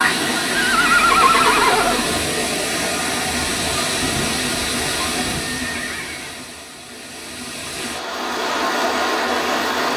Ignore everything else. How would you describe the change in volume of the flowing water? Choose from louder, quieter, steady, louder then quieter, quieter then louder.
quieter then louder.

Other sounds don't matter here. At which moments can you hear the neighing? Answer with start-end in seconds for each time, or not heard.
0.6-2.0, 5.5-6.3.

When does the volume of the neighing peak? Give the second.
1 s.